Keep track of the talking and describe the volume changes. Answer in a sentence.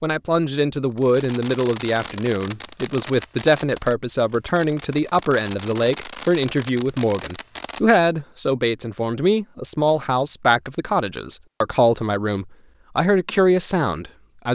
The loudness of the talking stays about the same.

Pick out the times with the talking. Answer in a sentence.
The talking can be heard from 0.0 to 14.4 s.